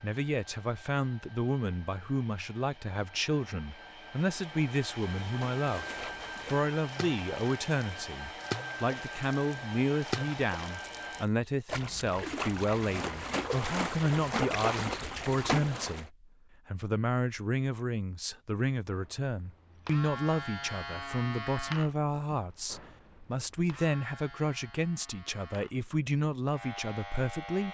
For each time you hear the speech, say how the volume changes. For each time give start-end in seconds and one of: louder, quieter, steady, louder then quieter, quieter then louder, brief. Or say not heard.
0.0-27.6 steady.